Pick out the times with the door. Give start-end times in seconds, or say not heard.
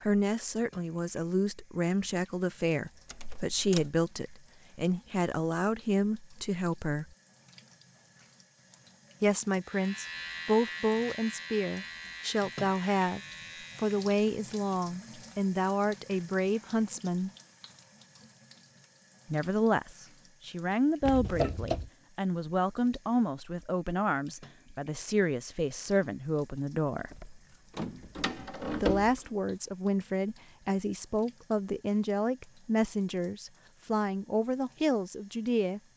3.1-3.9, 21.1-21.9, 27.1-29.3.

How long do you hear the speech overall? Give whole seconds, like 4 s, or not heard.
30 s.